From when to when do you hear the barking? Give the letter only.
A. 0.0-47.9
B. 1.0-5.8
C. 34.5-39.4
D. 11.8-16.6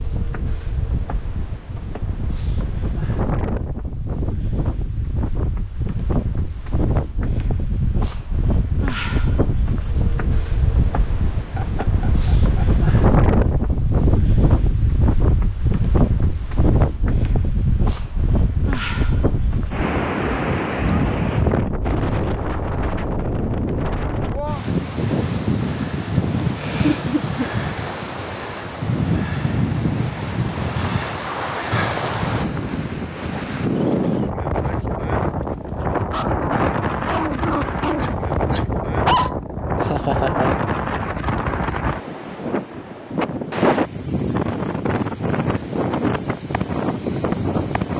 C.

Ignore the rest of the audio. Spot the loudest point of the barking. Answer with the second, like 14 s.
39 s.